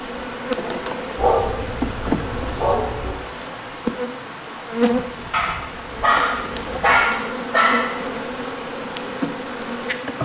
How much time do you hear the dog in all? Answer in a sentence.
The dog can be heard for 5 seconds in total.